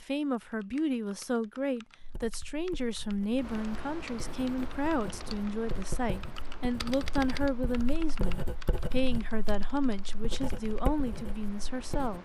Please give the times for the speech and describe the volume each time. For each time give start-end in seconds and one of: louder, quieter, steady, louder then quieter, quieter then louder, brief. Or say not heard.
0.0-12.1 steady.